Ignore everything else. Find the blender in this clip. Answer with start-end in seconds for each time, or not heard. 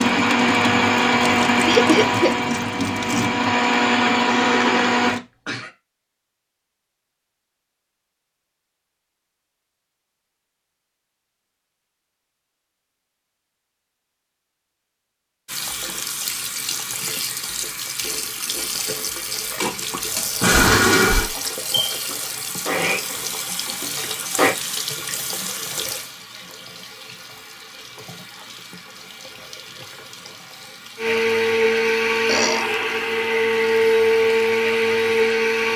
0.0-5.2, 19.6-24.6, 30.9-35.7.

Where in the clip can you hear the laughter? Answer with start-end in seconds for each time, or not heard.
1.6-2.4.